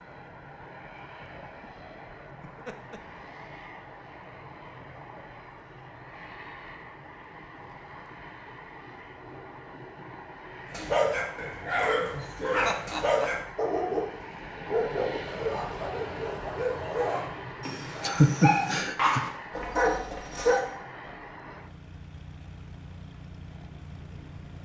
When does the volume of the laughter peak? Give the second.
18 s.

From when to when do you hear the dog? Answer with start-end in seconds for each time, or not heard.
10.7-20.6.